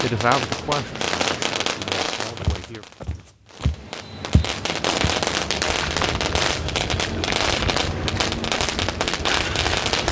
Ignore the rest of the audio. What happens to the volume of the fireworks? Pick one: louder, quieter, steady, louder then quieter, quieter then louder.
quieter then louder.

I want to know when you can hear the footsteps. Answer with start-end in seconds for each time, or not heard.
2.4-10.0.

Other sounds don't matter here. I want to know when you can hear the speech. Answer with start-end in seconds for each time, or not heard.
0.0-2.9.